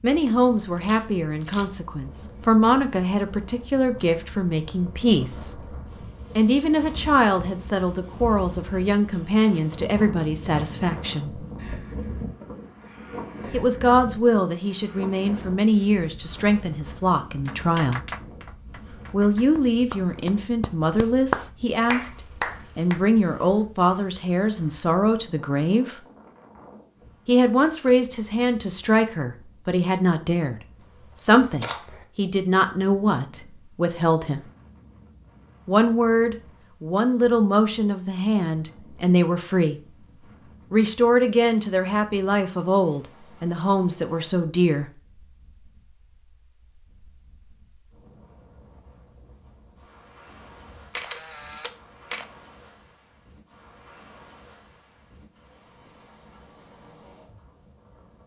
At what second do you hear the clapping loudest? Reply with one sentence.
The volume of the clapping peaks at 21 seconds.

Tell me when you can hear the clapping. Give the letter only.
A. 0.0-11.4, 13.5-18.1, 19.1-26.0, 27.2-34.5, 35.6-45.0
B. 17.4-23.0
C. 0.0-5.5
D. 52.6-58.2
B.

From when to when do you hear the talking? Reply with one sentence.
You can hear the talking from 0.0 to 11.4 s, from 13.5 to 18.1 s, from 19.1 to 26.0 s, from 27.2 to 34.5 s and from 35.6 to 45.0 s.